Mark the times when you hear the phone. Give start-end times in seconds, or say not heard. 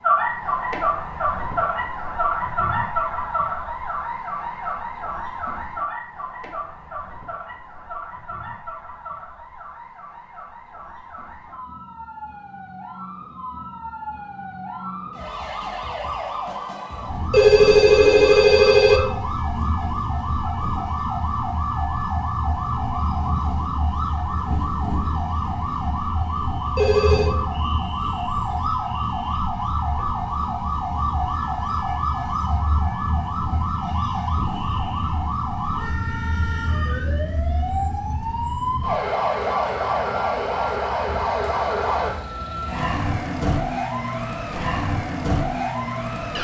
17.3-19.0, 26.8-27.4.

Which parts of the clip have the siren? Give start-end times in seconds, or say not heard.
0.0-46.3.